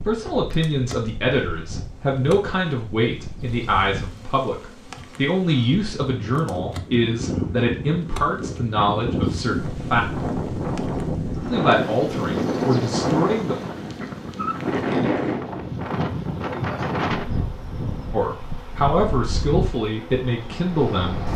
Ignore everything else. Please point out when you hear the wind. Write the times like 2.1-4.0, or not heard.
0.0-21.3.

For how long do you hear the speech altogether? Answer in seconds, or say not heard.
15 s.